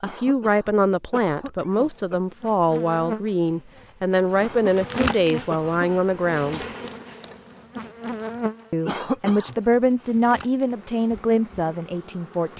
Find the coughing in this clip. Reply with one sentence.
You can hear the coughing from 0.0 to 2.1 s, from 4.4 to 5.8 s and from 8.8 to 9.6 s.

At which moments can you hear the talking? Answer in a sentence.
You can hear the talking from 0.0 to 6.7 s and from 8.7 to 12.5 s.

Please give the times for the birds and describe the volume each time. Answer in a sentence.
The birds can't be heard in this clip.